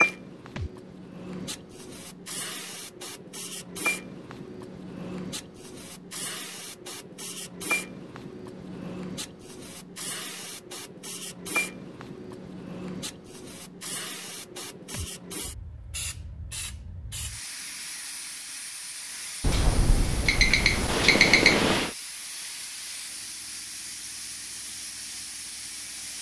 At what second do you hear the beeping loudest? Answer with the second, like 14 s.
21 s.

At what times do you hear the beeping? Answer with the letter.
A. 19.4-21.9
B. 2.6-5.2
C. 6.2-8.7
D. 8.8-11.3
A.